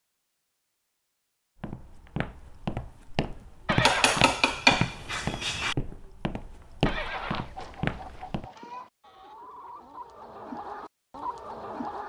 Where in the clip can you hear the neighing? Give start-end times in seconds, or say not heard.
3.6-4.3, 6.8-7.5.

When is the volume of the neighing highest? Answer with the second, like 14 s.
4 s.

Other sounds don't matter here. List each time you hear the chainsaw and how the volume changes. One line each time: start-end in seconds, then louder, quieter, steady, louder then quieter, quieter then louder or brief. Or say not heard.
not heard.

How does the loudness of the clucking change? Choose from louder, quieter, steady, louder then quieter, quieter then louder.
louder.